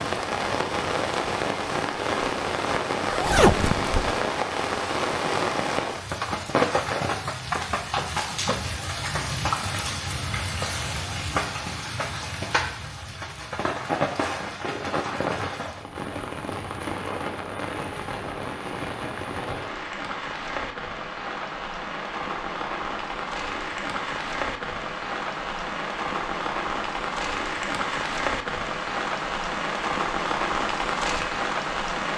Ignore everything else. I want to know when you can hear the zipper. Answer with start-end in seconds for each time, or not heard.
3.0-4.2.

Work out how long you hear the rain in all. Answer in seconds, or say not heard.
32 s.